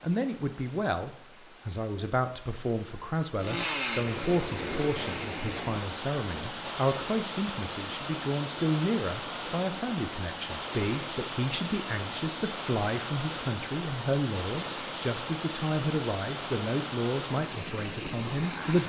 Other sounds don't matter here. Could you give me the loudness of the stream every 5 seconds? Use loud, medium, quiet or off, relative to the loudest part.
medium, loud, loud, loud.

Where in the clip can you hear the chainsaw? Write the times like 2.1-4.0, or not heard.
3.4-5.8.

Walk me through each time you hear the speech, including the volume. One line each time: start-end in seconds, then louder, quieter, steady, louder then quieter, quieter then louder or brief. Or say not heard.
0.0-18.8 steady.